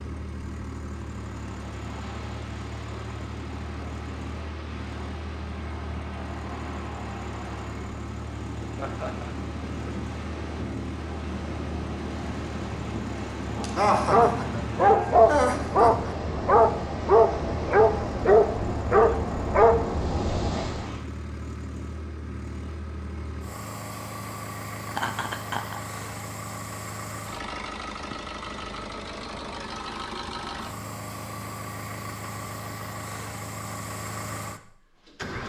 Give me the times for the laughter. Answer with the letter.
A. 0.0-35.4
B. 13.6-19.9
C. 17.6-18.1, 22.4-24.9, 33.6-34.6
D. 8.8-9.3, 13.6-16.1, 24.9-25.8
D.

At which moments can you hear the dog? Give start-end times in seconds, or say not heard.
13.6-19.9.